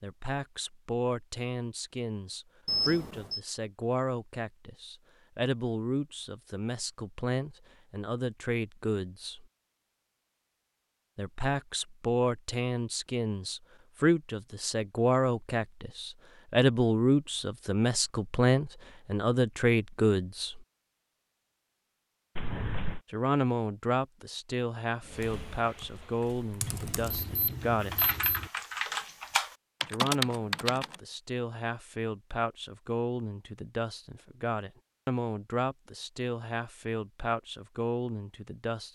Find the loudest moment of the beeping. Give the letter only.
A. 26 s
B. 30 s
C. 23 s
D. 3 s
D.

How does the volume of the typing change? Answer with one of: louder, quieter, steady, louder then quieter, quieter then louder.
louder.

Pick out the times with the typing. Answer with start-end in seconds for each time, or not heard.
25.1-30.9.